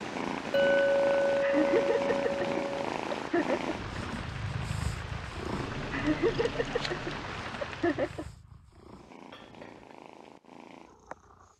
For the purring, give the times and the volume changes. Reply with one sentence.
You can hear the purring from 0.0 to 11.5 s, getting quieter.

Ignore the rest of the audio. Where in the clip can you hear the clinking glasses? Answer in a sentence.
The clinking glasses can be heard from 0.5 to 2.9 s and from 9.3 to 9.9 s.